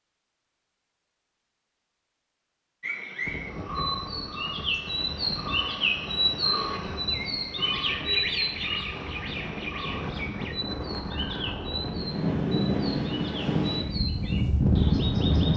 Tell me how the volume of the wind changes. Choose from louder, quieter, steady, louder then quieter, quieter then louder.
louder.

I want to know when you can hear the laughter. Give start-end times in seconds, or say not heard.
not heard.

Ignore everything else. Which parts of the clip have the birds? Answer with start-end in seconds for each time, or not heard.
2.8-15.5.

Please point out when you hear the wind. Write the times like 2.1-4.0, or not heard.
3.2-15.5.